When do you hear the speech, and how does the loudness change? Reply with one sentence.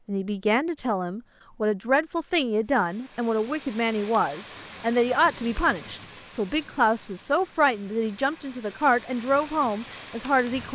The speech can be heard from 0.1 to 10.7 s, at a steady volume.